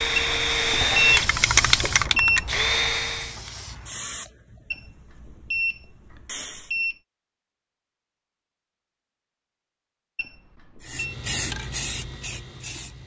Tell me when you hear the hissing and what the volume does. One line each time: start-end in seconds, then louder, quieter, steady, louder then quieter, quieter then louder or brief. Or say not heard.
0.0-6.7 quieter
10.8-13.0 brief.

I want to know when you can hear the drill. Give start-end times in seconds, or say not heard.
0.0-3.4.